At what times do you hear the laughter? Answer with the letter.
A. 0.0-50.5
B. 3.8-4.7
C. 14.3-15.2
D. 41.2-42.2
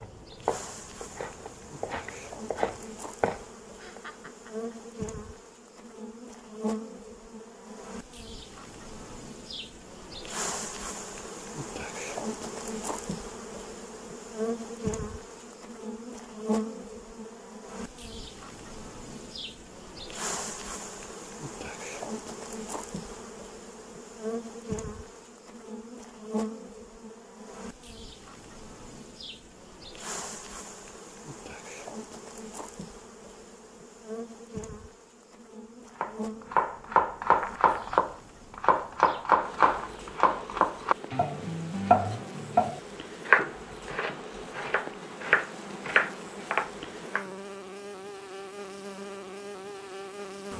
B.